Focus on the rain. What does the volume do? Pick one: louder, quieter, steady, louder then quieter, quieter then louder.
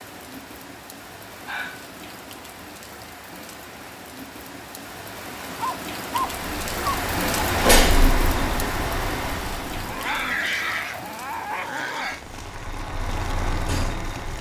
louder then quieter.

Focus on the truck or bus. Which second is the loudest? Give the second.
8 s.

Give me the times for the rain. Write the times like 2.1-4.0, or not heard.
0.0-14.3.